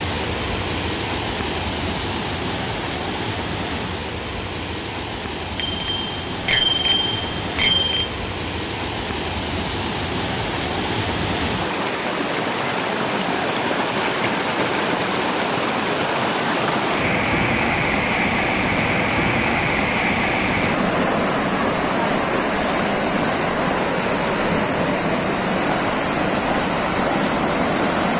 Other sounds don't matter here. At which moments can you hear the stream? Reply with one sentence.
The stream can be heard from 0.0 to 28.1 s.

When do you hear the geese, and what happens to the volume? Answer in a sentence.
The geese can't be heard in this clip.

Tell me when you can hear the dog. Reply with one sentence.
The dog can't be heard in this clip.